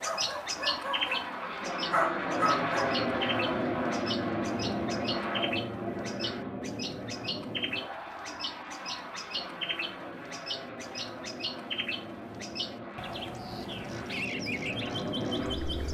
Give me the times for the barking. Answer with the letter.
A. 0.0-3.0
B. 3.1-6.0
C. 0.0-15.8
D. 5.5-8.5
A.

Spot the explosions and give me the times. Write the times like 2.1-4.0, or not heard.
not heard.